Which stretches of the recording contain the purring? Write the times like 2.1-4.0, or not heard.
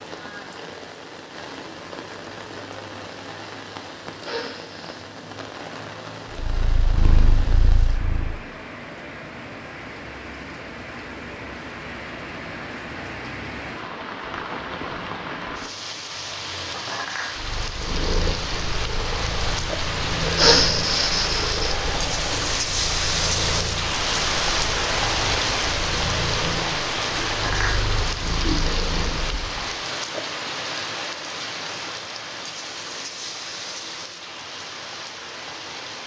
6.3-8.3, 17.4-29.7.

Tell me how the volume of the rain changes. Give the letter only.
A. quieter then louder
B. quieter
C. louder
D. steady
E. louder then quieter
E.